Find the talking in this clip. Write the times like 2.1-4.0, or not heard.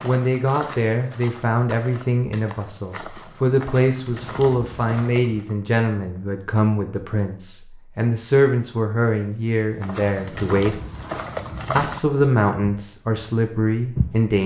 0.0-10.8, 11.8-14.4.